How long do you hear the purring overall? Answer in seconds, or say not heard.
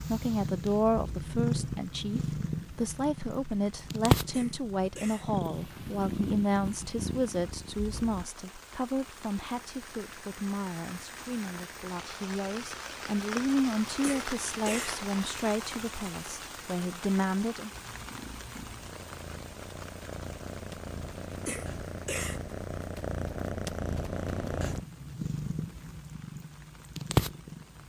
18 s.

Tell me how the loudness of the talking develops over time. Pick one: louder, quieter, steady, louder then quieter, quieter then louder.
steady.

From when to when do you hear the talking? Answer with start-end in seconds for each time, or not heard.
0.0-17.7.